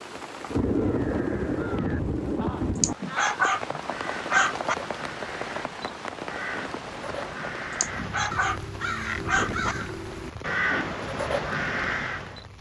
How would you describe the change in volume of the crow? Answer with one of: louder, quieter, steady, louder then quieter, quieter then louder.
louder.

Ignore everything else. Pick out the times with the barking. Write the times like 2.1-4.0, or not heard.
2.8-4.8, 7.8-9.8.